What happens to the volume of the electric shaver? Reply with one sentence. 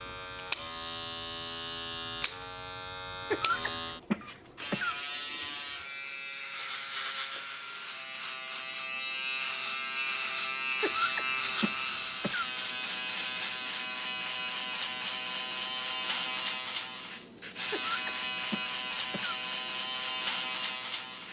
The loudness of the electric shaver goes up.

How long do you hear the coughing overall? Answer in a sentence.
The coughing can be heard for 5 seconds in total.